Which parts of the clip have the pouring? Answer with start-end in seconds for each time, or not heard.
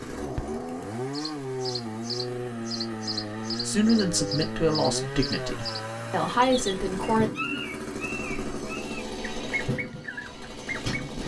not heard.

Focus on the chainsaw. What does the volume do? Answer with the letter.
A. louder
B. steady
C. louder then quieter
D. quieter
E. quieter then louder
B.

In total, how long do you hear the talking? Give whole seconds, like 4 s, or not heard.
4 s.